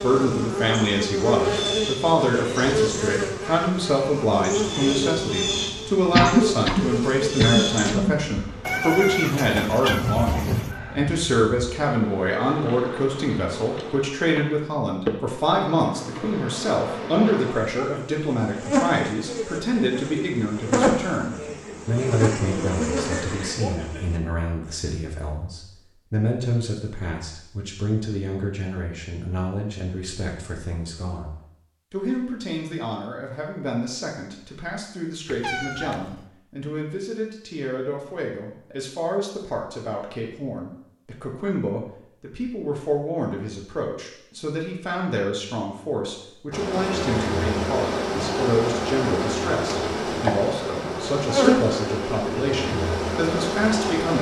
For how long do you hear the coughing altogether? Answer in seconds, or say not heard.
2 s.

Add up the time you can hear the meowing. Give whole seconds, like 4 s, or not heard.
3 s.